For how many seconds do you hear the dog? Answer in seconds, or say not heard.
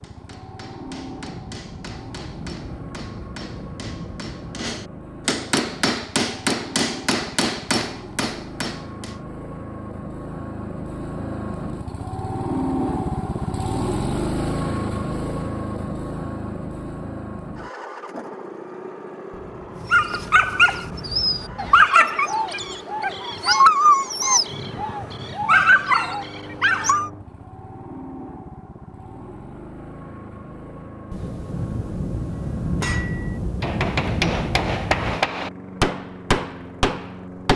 7 s.